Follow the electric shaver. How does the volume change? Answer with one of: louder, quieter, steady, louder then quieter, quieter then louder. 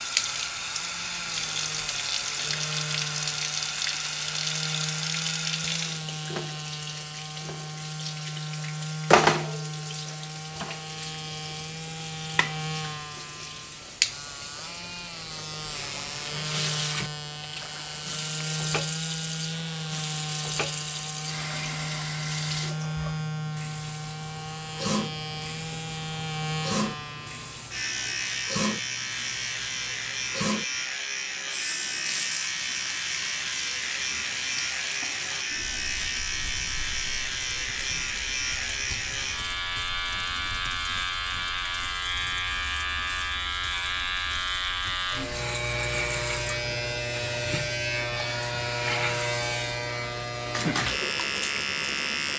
louder.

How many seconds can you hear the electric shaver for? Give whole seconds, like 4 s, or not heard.
52 s.